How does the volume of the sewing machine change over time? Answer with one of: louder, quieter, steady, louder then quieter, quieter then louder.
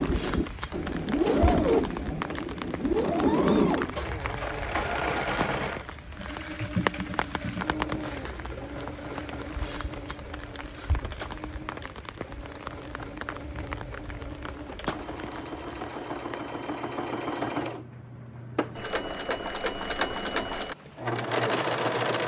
quieter then louder.